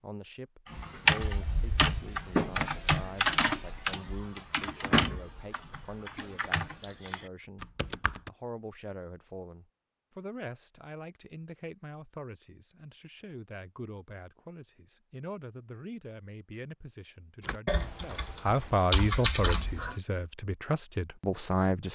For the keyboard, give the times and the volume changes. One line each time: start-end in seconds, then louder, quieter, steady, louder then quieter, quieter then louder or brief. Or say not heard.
0.7-8.3 quieter
17.4-19.9 brief.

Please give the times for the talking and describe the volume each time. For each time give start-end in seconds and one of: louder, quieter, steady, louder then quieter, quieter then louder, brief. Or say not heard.
0.0-21.9 louder.